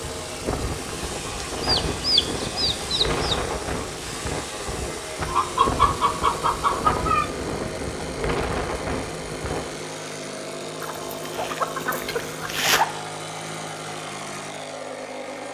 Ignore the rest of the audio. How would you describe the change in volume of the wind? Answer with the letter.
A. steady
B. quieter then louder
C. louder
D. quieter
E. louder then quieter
A.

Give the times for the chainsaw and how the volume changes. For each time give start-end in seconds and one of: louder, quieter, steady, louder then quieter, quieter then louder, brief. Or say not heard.
0.0-15.4 steady.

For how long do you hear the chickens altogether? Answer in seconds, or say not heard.
6 s.